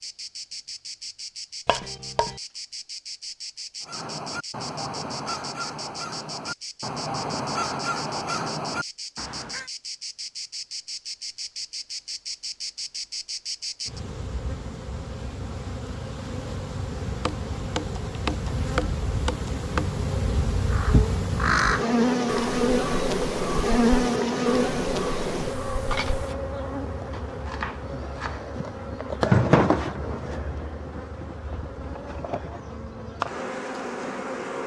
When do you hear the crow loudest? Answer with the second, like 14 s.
22 s.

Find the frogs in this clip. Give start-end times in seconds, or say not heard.
not heard.